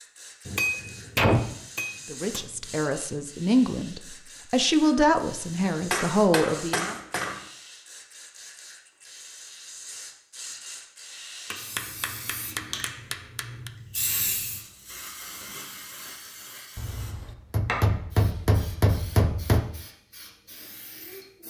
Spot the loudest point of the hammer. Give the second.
1 s.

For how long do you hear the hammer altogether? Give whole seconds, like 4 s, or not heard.
9 s.